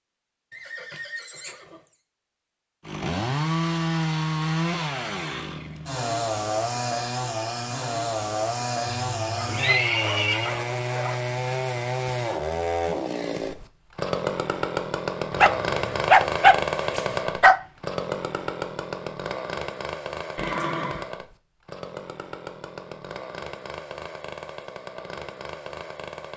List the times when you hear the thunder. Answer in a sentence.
The thunder can't be heard in this clip.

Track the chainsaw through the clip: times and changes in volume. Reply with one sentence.
The chainsaw can be heard from 2.9 to 26.3 s, getting quieter.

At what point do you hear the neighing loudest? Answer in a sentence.
The loudest moment of the neighing is at 10 seconds.